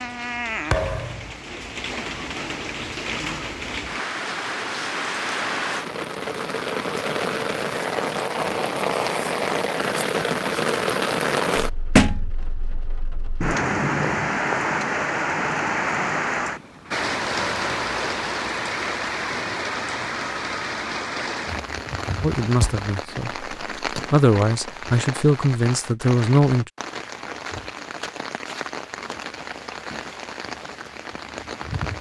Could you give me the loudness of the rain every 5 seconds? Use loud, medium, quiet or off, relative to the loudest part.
medium, loud, loud, loud, medium, medium, medium.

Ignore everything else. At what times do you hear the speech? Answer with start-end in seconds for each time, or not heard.
22.2-26.7.